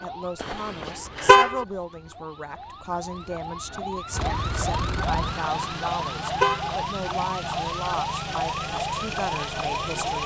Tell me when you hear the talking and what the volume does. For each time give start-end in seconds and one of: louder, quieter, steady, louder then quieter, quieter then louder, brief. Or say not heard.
0.0-10.2 steady.